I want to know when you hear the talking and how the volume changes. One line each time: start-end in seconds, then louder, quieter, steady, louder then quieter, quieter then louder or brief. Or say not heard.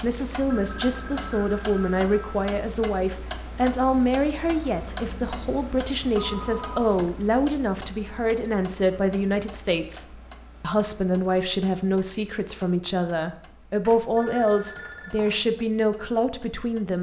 0.0-16.9 steady.